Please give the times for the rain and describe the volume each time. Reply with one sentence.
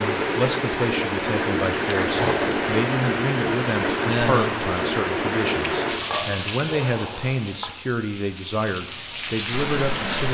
You can hear the rain from 0.0 to 10.2 s, getting quieter.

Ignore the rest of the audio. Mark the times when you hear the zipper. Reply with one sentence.
You can hear the zipper from 2.1 to 2.6 s and from 6.0 to 7.8 s.